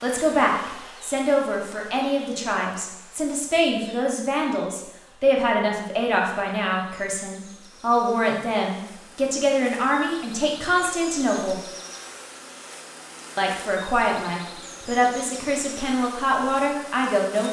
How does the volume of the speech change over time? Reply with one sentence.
The volume of the speech stays about the same.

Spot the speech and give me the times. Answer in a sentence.
You can hear the speech from 0.0 to 11.6 s and from 13.3 to 17.4 s.